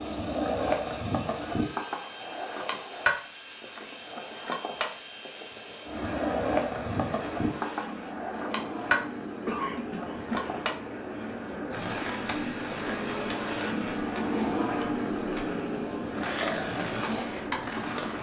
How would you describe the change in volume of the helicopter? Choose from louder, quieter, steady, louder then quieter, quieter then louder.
louder.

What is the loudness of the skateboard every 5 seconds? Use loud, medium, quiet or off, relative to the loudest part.
loud, loud, medium, loud.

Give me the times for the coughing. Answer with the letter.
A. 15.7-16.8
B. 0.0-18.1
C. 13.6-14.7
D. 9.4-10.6
D.